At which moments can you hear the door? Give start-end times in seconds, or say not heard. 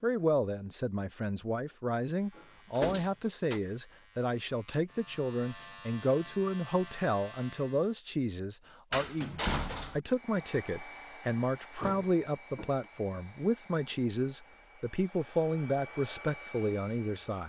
2.4-3.6, 8.9-10.0, 11.8-12.8.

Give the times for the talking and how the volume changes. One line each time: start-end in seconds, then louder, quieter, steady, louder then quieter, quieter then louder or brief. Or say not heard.
0.0-17.4 steady.